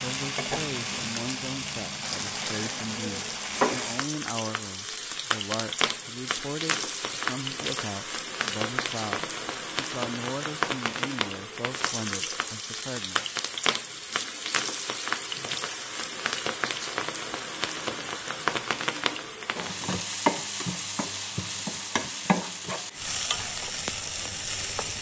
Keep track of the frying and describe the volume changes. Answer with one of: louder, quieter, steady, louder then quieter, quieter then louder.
steady.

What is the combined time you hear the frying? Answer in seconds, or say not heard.
25 s.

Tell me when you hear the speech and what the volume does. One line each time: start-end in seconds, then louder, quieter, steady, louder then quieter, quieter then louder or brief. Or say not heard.
0.0-13.2 steady.